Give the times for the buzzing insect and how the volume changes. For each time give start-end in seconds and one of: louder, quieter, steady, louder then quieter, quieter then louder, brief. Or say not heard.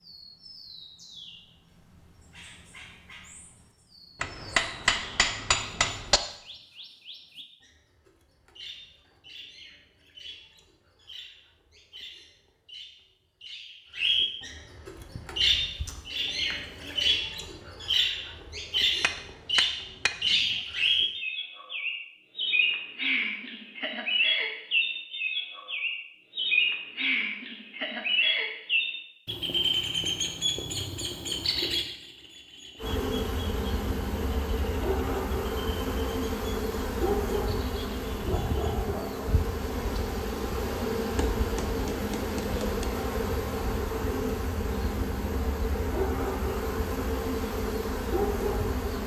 14.9-17.2 brief
32.8-49.0 steady.